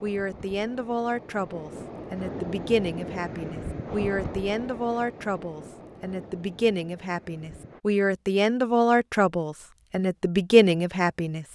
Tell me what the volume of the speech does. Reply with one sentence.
The volume of the speech goes up.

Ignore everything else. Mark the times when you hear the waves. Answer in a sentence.
The waves can be heard from 0.0 to 7.8 s.